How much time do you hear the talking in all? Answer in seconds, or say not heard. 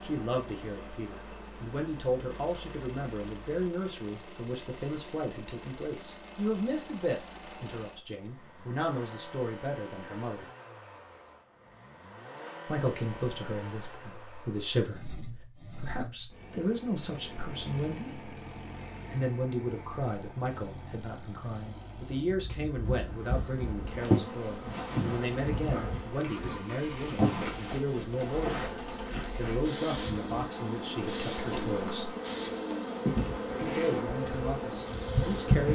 31 s.